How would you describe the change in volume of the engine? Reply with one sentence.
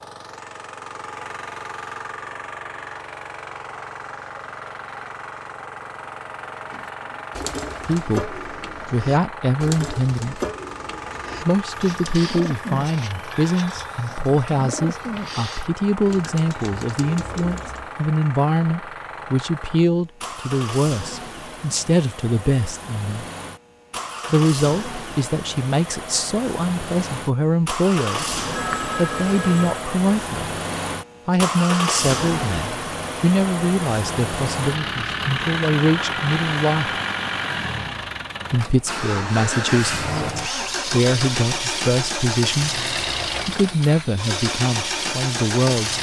The volume of the engine goes up.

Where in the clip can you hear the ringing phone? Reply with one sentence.
You can hear the ringing phone from 28.1 to 29.9 s.